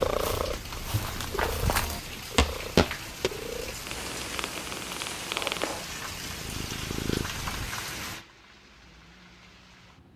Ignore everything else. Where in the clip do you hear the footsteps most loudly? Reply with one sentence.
The loudest moment of the footsteps is at 3 seconds.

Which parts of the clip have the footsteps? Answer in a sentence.
The footsteps can be heard from 0.1 to 3.3 s.